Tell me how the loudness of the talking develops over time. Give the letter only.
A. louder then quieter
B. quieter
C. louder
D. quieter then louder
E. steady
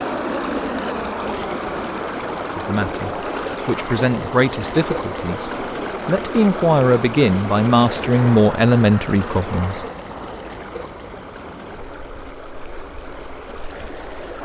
C.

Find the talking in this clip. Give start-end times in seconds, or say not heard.
2.5-9.8.